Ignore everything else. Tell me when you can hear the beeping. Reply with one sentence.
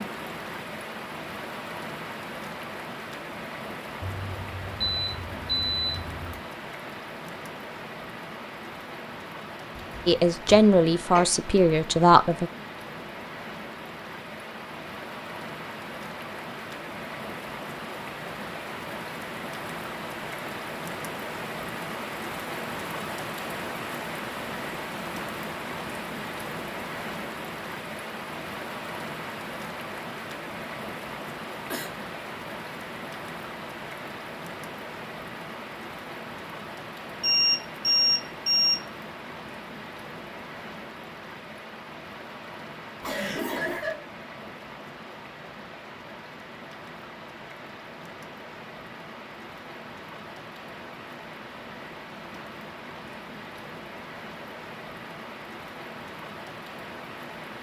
The beeping can be heard from 4.0 to 6.4 s and from 37.2 to 38.8 s.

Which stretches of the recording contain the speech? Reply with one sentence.
You can hear the speech from 10.1 to 12.5 s.